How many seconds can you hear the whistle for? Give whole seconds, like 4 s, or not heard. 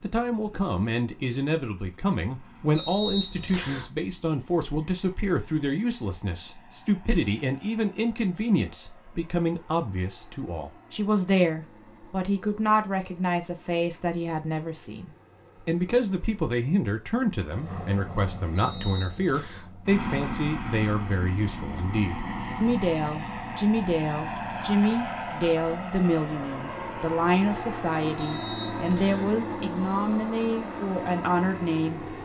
3 s.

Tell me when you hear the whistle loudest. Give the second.
3 s.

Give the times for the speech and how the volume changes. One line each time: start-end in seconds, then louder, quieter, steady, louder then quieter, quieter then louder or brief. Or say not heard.
0.0-32.0 steady.